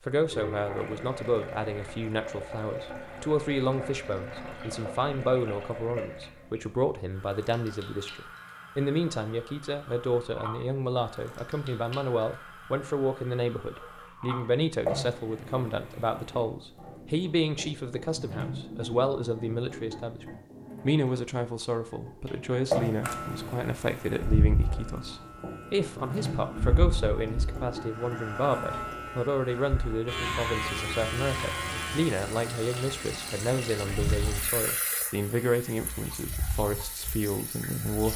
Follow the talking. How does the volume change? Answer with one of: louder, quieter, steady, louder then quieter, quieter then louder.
steady.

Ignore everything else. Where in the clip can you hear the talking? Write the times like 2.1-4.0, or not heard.
0.0-38.1.